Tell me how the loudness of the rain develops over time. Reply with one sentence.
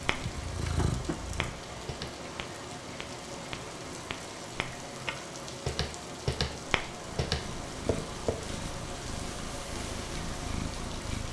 The loudness of the rain stays about the same.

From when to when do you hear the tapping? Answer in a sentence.
You can hear the tapping from 0.1 to 8.3 s.